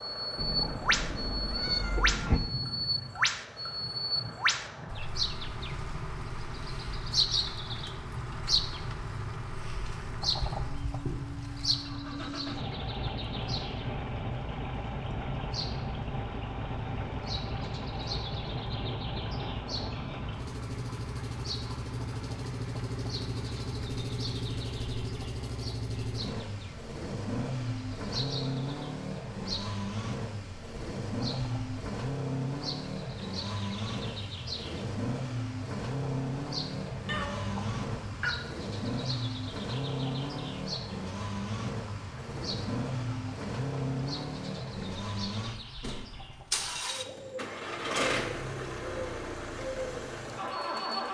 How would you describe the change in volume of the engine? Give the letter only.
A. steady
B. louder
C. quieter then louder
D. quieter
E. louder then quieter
B.